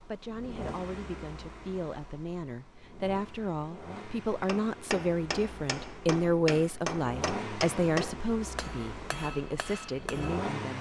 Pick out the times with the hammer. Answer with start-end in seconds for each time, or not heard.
4.5-10.5.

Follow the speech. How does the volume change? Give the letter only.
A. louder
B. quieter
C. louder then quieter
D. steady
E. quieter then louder
C.